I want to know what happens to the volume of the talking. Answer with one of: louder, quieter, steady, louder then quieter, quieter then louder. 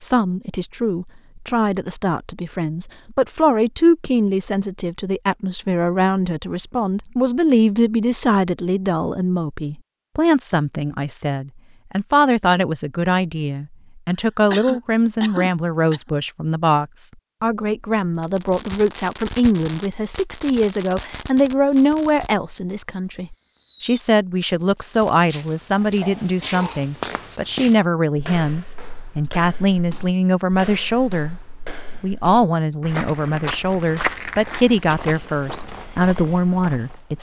steady.